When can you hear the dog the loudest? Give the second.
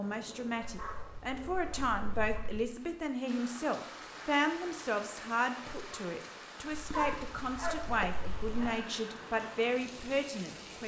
7 s.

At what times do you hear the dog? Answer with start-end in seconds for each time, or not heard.
0.0-2.5, 7.0-8.7.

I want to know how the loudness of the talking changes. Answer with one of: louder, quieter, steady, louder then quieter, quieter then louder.
steady.